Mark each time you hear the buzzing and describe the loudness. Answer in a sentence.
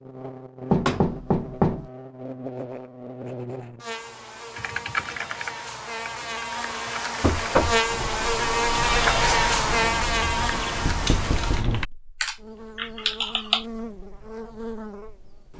You can hear the buzzing from 0.0 to 15.5 s, getting louder then quieter.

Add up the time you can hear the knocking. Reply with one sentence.
You can hear the knocking for 3 seconds altogether.